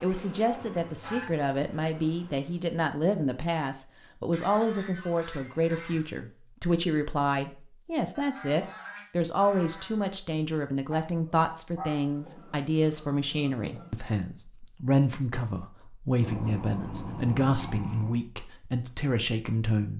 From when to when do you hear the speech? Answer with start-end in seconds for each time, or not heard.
0.0-19.9.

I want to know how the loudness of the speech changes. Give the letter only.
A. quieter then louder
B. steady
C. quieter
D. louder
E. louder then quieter
B.